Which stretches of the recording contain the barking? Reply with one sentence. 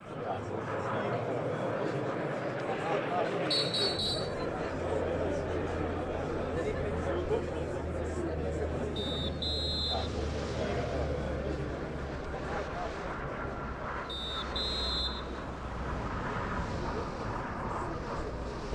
The barking can't be heard in this clip.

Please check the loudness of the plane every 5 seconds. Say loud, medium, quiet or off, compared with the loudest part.
loud, medium, loud, loud.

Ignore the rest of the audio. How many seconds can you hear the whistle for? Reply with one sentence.
You can hear the whistle for 4 seconds altogether.